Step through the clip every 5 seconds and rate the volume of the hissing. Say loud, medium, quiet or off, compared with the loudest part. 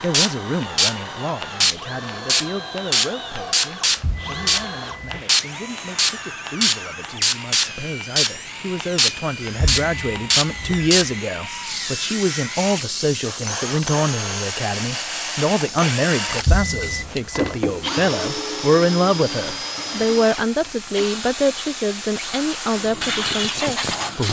loud, loud, medium, quiet, medium.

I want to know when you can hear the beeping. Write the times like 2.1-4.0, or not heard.
3.9-5.2, 9.4-10.9, 16.2-17.6.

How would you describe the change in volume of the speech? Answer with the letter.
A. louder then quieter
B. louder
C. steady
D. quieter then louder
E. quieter
B.